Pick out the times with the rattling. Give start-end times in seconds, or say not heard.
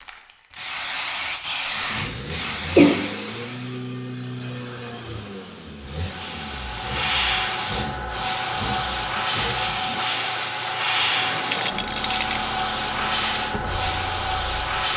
11.4-12.4.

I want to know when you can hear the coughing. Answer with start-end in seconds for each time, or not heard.
2.1-3.0.